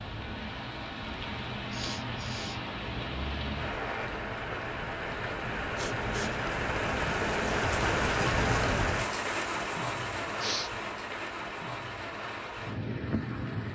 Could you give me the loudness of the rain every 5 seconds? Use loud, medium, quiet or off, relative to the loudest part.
medium, loud, medium.